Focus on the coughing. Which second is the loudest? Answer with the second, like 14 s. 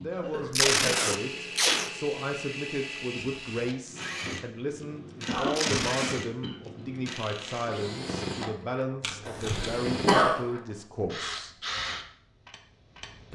10 s.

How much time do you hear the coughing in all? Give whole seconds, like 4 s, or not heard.
3 s.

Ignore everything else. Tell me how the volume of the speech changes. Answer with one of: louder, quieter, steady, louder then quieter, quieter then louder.
steady.